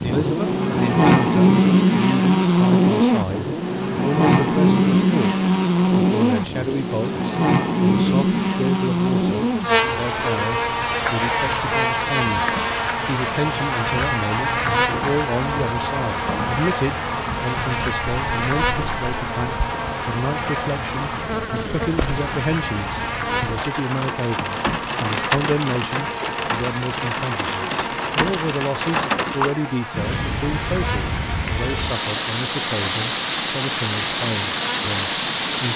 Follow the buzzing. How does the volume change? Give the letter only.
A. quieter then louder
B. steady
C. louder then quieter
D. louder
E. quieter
E.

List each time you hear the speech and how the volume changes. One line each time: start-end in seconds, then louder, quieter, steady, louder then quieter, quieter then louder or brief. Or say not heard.
0.0-35.7 steady.